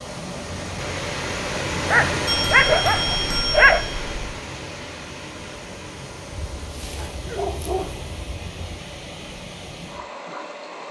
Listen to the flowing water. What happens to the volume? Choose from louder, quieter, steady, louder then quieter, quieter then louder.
quieter.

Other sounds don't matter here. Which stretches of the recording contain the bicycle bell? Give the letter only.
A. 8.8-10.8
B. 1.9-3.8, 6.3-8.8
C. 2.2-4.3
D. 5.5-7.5
C.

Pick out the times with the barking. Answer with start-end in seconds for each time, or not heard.
1.9-3.8, 6.3-8.8.